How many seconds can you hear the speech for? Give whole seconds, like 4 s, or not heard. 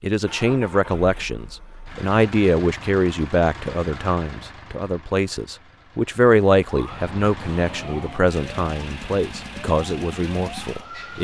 11 s.